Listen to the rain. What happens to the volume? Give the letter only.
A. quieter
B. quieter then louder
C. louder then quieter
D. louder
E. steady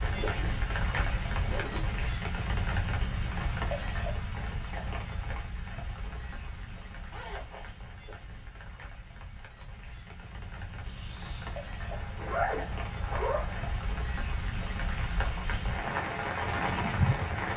B.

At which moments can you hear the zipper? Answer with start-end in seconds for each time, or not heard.
0.1-2.1, 7.1-7.7, 11.9-13.8.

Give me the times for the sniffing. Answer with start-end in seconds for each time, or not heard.
10.8-11.6.